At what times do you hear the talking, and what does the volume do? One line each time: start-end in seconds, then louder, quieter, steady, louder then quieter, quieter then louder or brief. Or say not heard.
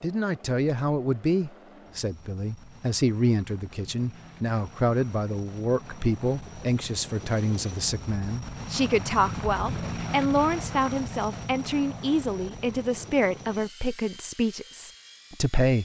0.0-15.8 steady.